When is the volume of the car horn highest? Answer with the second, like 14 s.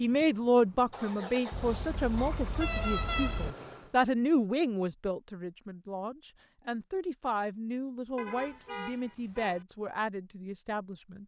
3 s.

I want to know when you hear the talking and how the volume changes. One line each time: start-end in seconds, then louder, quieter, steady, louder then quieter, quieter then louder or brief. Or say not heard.
0.0-11.2 quieter.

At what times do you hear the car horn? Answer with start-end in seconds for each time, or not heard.
1.5-3.5, 8.2-9.7.